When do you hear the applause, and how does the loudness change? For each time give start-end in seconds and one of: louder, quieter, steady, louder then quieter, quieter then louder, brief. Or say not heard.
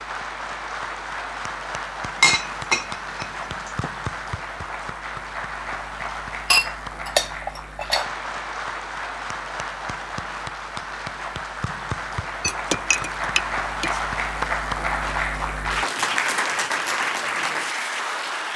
0.0-18.5 louder.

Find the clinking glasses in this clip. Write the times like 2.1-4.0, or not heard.
2.2-3.9, 6.5-8.1, 12.4-14.0.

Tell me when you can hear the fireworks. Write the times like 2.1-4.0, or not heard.
not heard.